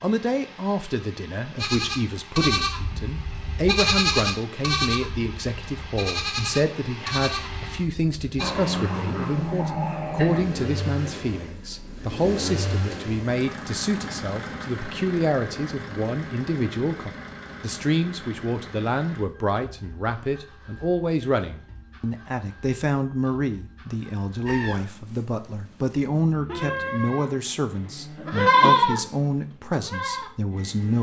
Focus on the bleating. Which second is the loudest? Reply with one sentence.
The volume of the bleating peaks at 29 seconds.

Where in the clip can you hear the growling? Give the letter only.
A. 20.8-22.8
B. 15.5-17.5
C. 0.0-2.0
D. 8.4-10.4
D.